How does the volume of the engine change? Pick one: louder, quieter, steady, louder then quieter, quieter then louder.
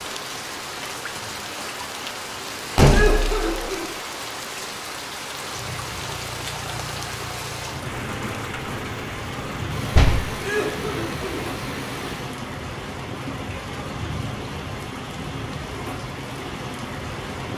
steady.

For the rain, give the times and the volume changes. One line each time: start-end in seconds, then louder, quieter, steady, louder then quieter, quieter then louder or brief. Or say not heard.
0.0-17.5 steady.